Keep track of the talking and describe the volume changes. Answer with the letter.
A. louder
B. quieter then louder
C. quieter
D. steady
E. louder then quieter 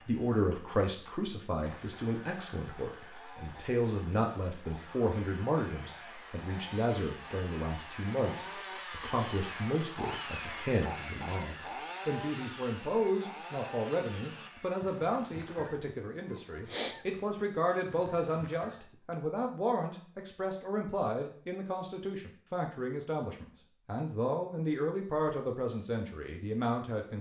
D.